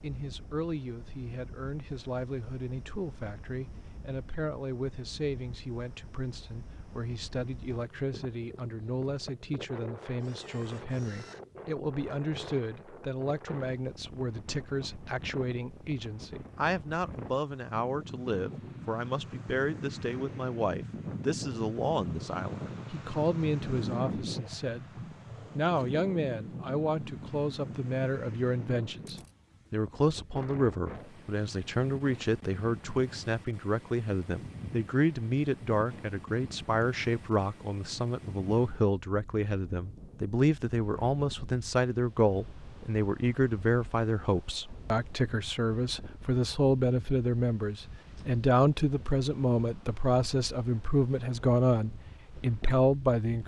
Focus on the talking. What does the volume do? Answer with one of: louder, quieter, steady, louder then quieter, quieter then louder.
louder.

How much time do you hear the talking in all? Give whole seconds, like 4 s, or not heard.
53 s.